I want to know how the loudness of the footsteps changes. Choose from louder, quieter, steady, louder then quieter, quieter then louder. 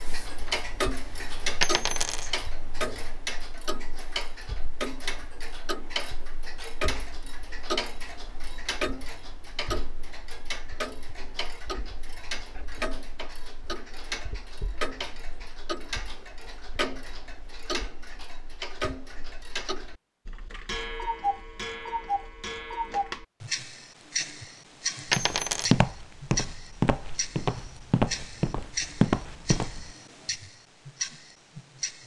quieter then louder.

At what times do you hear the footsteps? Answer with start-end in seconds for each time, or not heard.
25.1-29.9.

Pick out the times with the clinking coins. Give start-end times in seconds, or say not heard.
1.6-2.4, 25.1-25.7.